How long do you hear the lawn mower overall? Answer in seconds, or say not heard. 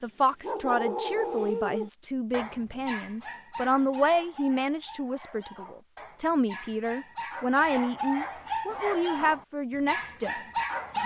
not heard.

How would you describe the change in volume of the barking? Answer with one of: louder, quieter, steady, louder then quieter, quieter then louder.
quieter then louder.